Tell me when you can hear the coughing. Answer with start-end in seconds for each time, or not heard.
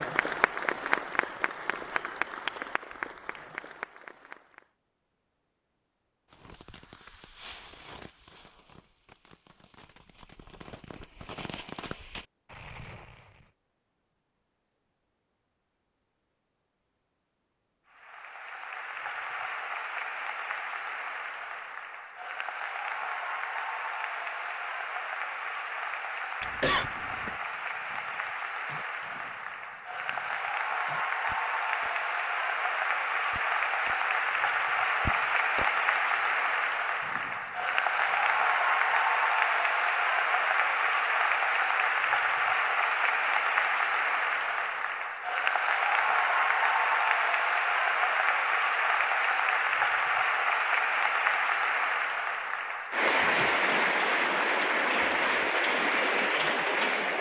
26.4-27.4.